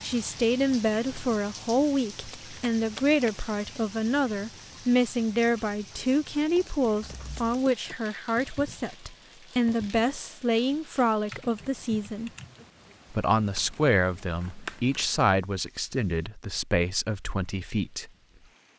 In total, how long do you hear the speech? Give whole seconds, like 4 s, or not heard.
17 s.